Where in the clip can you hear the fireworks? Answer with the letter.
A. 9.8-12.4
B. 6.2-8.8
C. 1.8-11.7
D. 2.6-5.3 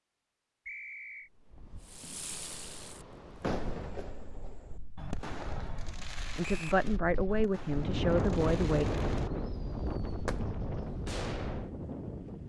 C.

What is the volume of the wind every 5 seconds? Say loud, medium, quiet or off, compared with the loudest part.
quiet, loud, loud.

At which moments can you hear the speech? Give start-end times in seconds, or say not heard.
6.2-8.8.